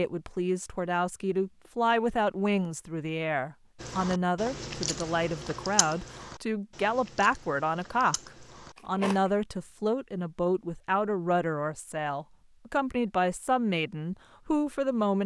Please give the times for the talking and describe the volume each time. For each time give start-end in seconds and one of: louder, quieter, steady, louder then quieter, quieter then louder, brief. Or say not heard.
0.0-15.2 steady.